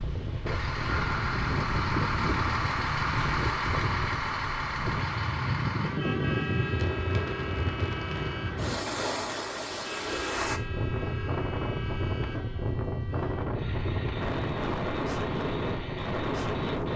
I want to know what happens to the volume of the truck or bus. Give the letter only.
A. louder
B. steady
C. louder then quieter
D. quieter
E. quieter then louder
D.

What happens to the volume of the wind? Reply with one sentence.
The loudness of the wind stays about the same.